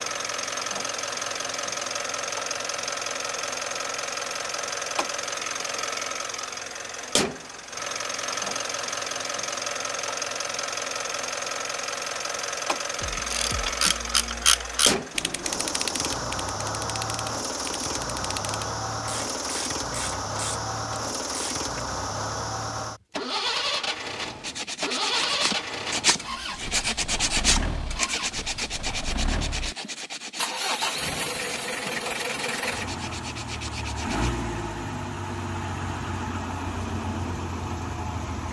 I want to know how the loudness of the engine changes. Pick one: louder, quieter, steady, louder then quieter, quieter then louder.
steady.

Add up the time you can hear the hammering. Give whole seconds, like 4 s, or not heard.
not heard.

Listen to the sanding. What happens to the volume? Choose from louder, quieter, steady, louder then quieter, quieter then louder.
quieter.